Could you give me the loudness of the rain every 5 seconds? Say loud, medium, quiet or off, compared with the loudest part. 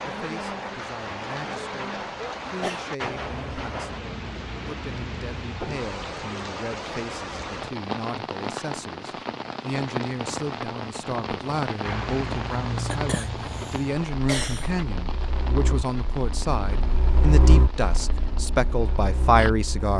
loud, loud, loud, medium.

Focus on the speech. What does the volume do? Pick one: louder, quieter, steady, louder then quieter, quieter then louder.
louder.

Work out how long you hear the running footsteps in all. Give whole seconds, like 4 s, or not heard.
not heard.